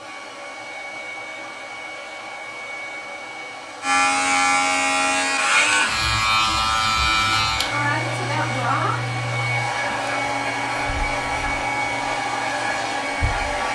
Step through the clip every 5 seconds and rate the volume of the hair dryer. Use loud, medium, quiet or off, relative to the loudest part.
medium, loud, loud.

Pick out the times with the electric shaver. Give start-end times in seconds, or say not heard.
3.8-13.6.